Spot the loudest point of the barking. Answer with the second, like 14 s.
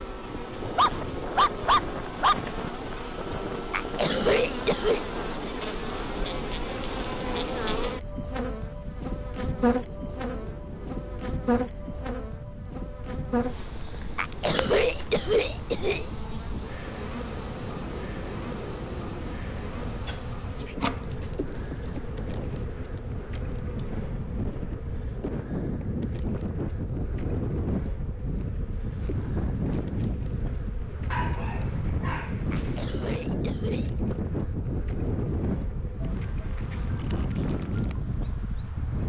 2 s.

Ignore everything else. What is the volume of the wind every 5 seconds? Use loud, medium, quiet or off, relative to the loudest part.
medium, medium, quiet, medium, medium, loud, loud, loud.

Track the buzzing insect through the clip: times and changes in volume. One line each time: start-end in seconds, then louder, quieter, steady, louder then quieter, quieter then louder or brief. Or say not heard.
0.0-39.0 quieter.